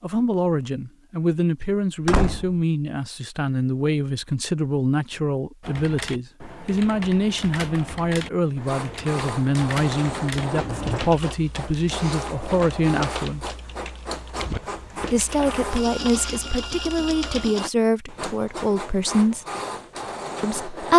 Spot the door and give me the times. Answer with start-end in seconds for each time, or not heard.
1.6-2.5, 10.5-11.2, 14.5-15.6.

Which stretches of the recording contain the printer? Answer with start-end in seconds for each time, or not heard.
8.4-20.9.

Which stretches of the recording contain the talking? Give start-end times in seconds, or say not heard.
0.0-13.6, 15.1-19.4, 20.4-20.9.